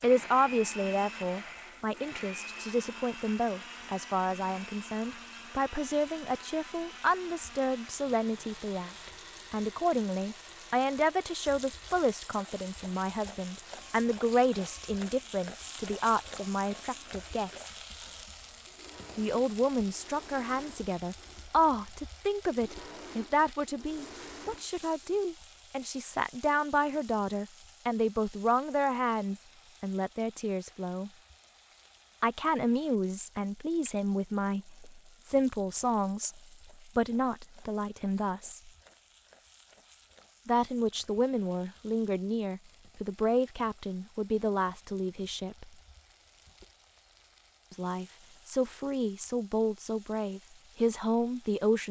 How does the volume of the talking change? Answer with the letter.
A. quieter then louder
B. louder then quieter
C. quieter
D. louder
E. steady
E.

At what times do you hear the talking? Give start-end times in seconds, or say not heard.
0.0-17.7, 19.1-31.1, 32.2-38.7, 40.5-45.7, 47.7-51.8.